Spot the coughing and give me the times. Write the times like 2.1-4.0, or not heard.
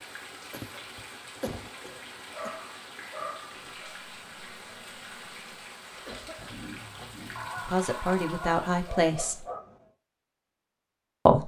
0.5-2.5, 5.8-7.2.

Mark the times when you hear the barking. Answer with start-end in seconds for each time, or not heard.
2.3-3.9, 7.3-9.9.